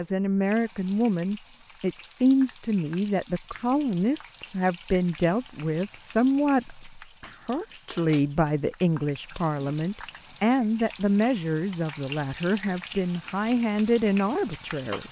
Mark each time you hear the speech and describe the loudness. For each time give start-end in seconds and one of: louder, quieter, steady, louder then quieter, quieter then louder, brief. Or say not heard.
0.0-15.0 steady.